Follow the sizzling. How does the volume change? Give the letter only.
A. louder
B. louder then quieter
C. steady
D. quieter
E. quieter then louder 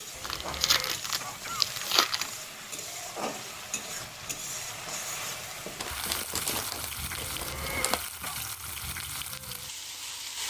C.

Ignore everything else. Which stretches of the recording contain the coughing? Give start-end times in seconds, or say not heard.
0.1-1.8, 7.2-8.4.